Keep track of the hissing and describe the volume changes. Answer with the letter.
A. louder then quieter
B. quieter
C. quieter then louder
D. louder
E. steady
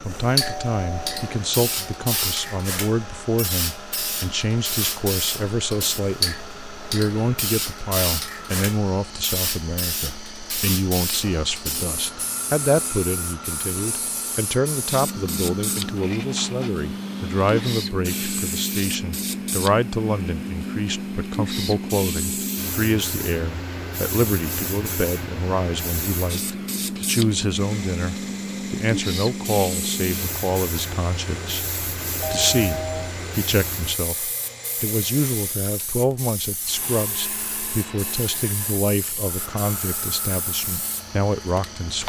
B.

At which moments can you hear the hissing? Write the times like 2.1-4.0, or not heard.
0.0-42.0.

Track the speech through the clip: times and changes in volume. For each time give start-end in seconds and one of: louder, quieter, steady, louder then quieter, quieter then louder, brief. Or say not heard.
0.0-42.0 steady.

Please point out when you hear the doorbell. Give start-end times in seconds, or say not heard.
0.4-1.4, 32.2-33.1.